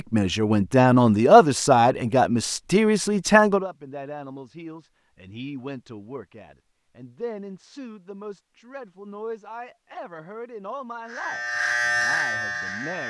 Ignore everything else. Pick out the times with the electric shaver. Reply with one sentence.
The electric shaver can be heard from 11.0 to 13.0 s.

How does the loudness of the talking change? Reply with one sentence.
The volume of the talking goes down.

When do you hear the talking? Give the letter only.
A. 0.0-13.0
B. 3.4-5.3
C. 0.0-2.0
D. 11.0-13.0
A.